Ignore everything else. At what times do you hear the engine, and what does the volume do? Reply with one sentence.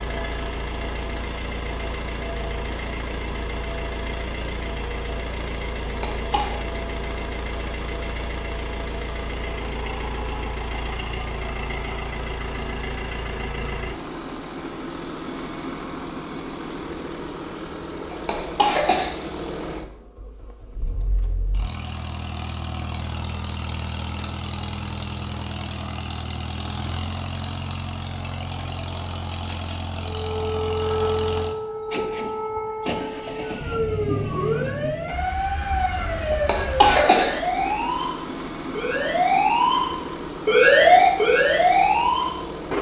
You can hear the engine from 0.0 to 42.7 s, at a steady volume.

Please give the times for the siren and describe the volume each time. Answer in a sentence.
The siren can be heard from 30.1 to 42.5 s, getting louder.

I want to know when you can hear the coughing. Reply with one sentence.
You can hear the coughing from 5.8 to 6.5 s, from 18.1 to 19.1 s and from 36.3 to 37.8 s.